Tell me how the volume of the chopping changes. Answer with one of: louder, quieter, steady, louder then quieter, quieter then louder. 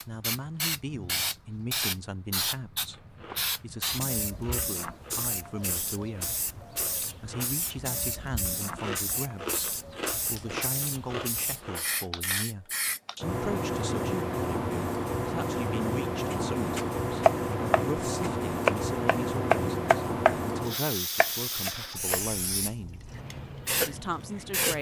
quieter.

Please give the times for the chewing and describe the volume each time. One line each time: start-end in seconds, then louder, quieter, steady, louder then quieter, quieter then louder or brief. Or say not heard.
2.9-12.1 louder.